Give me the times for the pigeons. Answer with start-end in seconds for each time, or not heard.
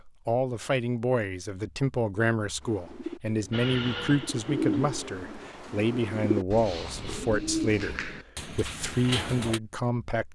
2.6-9.6.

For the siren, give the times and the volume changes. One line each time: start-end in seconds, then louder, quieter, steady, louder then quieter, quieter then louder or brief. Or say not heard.
not heard.